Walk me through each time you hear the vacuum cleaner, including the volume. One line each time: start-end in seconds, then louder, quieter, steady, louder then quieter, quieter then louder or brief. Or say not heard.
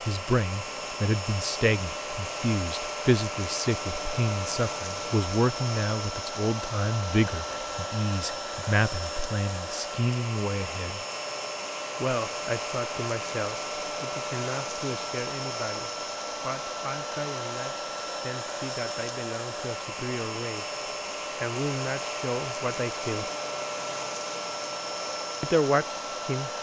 0.0-26.5 steady.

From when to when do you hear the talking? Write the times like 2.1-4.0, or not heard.
0.0-11.1, 12.0-20.6, 21.4-23.3, 25.4-26.5.